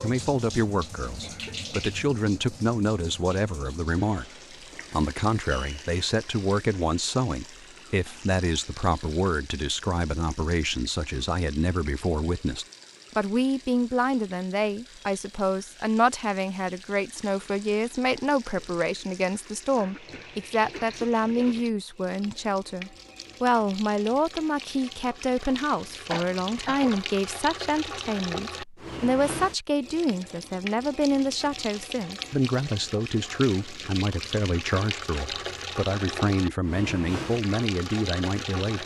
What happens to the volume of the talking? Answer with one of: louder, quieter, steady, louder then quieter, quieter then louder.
steady.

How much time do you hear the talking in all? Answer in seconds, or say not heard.
38 s.